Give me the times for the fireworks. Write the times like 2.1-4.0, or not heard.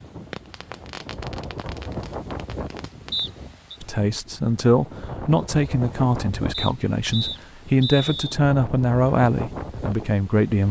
0.1-3.2.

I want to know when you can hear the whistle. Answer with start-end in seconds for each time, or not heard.
3.1-3.8, 6.5-8.4.